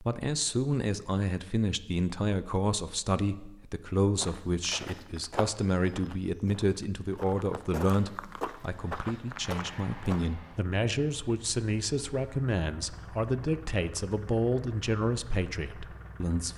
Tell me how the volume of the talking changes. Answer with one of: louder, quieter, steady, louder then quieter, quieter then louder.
steady.